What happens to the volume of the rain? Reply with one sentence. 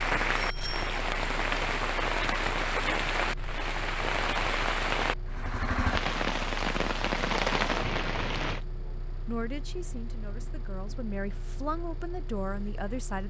The volume of the rain stays about the same.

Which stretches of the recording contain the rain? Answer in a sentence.
You can hear the rain from 0.0 to 8.6 s.